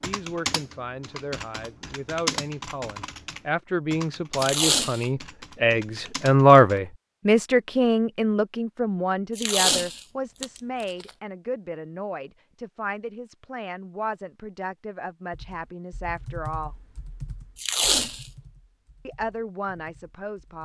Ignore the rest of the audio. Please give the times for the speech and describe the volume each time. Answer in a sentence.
The speech can be heard from 0.0 to 16.8 s, getting louder then quieter; and briefly from 19.1 to 20.6 s.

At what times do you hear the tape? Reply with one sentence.
The tape can be heard from 4.3 to 5.0 s, from 9.3 to 11.1 s and from 17.6 to 18.2 s.